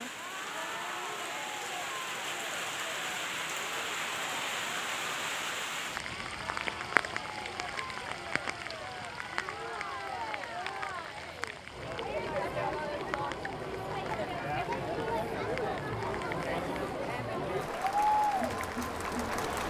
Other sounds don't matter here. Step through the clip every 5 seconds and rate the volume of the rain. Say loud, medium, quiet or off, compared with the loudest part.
loud, loud, medium, medium.